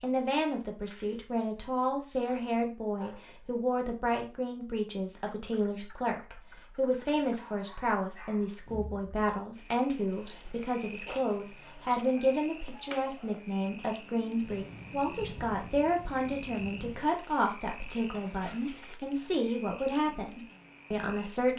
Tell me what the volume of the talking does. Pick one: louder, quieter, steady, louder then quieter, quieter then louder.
steady.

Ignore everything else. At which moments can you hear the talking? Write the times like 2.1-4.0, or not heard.
0.0-21.5.